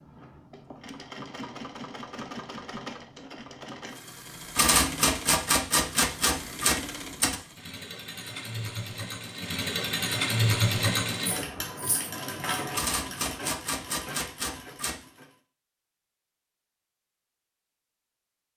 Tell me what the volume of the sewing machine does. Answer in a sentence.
The loudness of the sewing machine goes up, then down.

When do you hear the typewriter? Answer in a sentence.
The typewriter can be heard from 4.5 to 7.4 s and from 12.7 to 15.0 s.